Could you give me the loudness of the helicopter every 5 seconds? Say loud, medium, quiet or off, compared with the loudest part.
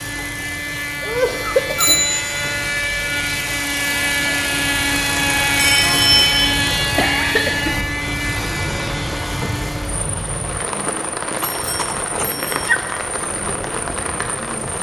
loud, loud, quiet.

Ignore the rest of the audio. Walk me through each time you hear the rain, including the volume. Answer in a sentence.
You can hear the rain from 0.0 to 14.7 s, getting louder.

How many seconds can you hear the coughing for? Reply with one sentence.
You can hear the coughing for 3 seconds altogether.